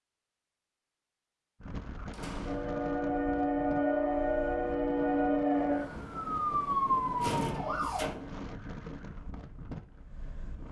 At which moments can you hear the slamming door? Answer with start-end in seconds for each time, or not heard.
2.1-2.6, 7.2-8.4.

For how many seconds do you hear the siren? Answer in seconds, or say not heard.
6 s.